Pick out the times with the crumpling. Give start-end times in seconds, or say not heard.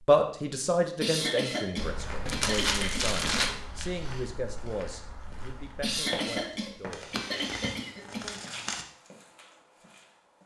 2.2-3.5, 6.9-8.8.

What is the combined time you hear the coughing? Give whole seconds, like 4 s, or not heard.
5 s.